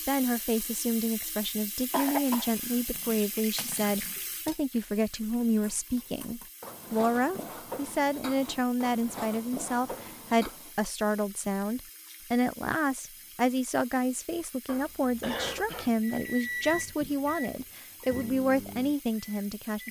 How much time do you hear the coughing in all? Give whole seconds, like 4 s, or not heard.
2 s.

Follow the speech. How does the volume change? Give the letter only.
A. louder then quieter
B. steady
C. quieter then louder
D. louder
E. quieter
B.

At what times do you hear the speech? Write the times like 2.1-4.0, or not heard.
0.1-19.8.